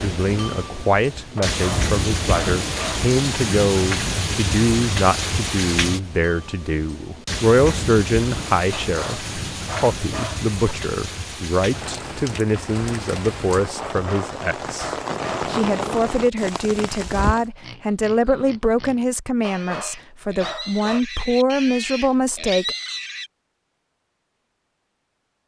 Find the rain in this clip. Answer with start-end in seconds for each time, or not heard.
0.0-17.4.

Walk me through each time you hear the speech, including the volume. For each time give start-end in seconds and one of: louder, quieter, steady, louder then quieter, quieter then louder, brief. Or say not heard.
0.0-22.8 steady.